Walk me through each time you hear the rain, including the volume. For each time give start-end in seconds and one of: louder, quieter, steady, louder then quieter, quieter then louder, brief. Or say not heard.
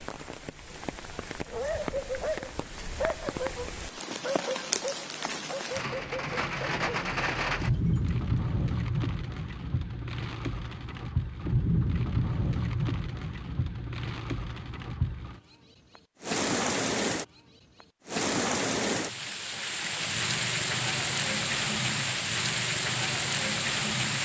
0.0-24.2 louder.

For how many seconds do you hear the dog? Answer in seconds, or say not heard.
7 s.